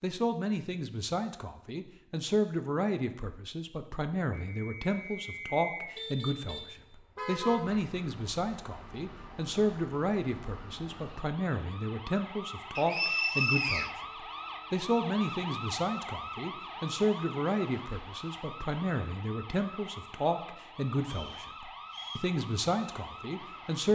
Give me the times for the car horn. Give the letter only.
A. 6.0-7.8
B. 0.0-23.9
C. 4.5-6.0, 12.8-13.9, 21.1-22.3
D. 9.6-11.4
A.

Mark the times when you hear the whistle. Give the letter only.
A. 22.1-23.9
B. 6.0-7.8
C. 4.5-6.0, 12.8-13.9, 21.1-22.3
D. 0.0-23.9
C.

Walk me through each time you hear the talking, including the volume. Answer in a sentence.
You can hear the talking from 0.0 to 23.9 s, at a steady volume.